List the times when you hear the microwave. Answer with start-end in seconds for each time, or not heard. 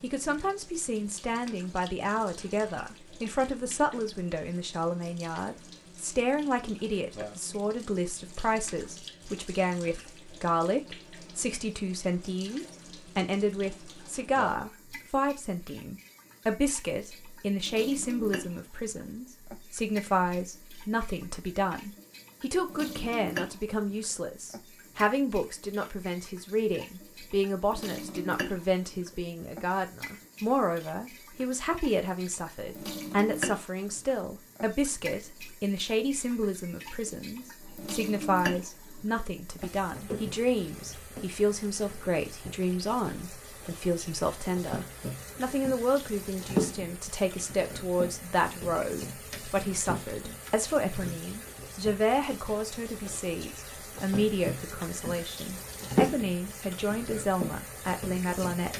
not heard.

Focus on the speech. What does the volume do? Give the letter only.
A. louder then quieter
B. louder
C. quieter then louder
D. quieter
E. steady
E.